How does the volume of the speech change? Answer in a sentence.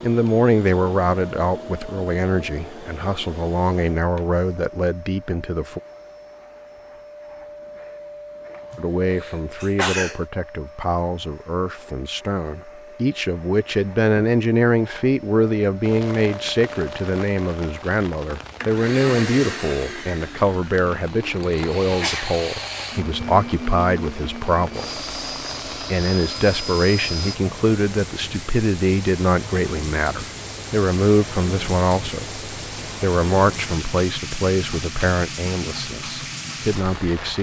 The loudness of the speech stays about the same.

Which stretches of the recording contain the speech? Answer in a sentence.
You can hear the speech from 0.0 to 5.8 s, from 8.8 to 25.0 s and from 25.9 to 37.3 s.